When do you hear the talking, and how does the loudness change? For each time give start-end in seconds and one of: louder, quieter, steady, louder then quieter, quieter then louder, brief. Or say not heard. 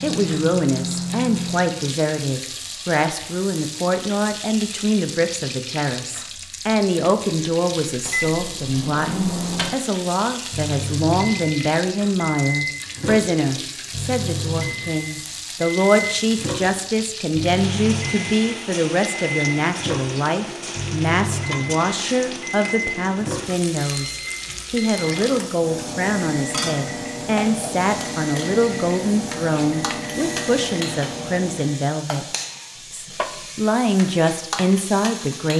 0.0-32.2 steady
32.9-35.5 brief.